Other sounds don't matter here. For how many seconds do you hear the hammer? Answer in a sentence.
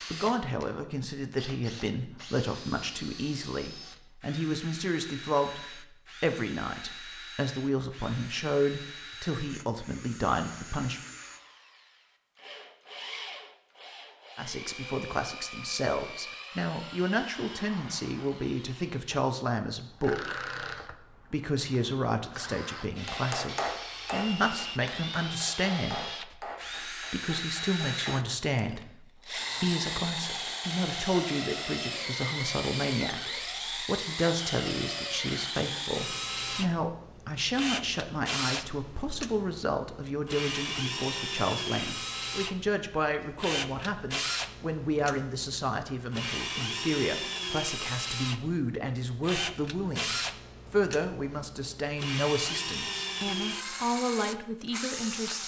You can hear the hammer for 5 seconds altogether.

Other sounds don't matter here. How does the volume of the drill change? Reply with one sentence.
The volume of the drill goes up.